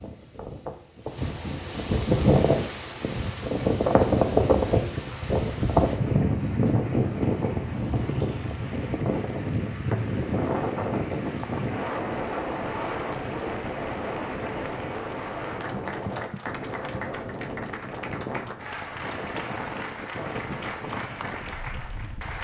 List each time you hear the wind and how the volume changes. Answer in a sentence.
The wind can be heard from 0.0 to 22.4 s, getting quieter.